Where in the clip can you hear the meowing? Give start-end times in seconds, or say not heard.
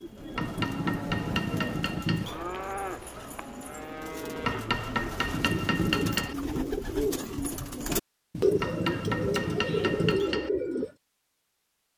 0.4-2.4, 5.3-6.3, 8.3-10.3.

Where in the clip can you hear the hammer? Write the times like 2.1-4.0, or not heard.
0.3-2.2, 4.4-6.3, 8.6-10.5.